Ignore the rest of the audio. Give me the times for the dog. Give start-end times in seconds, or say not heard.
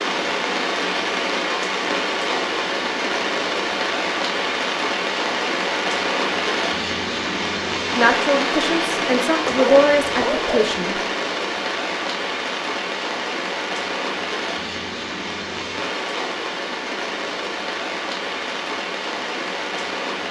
8.6-10.9.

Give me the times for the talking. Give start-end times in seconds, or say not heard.
8.0-11.0.